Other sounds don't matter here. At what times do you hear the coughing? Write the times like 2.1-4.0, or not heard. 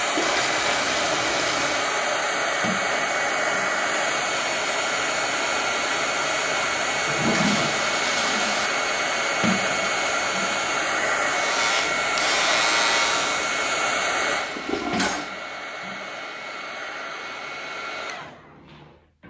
not heard.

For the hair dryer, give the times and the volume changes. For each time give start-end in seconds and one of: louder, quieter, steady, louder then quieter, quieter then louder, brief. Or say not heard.
0.0-19.2 quieter.